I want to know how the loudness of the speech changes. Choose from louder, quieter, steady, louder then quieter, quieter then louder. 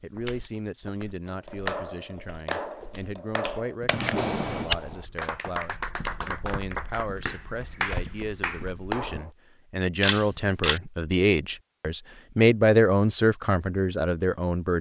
louder.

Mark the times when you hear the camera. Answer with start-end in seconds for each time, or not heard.
3.9-4.7, 10.0-10.8.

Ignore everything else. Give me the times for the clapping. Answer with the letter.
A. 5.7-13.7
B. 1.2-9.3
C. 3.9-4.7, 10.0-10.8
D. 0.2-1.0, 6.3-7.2
B.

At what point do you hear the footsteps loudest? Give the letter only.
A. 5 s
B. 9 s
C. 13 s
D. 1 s
A.